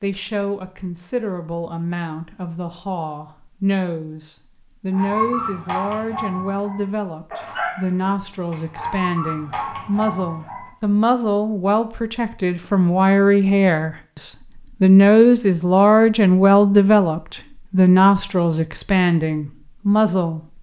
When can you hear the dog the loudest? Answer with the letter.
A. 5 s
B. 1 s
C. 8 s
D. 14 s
A.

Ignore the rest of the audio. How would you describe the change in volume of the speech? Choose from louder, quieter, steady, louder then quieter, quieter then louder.
louder.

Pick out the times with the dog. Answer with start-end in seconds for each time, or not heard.
4.9-10.7.